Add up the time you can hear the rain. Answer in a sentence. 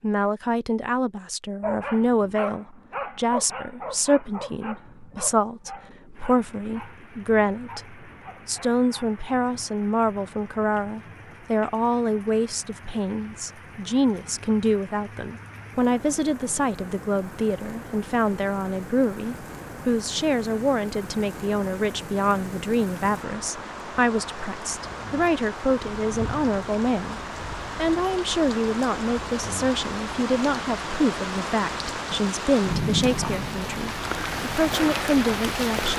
You can hear the rain for 30 seconds altogether.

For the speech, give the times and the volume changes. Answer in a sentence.
You can hear the speech from 0.0 to 35.9 s, at a steady volume.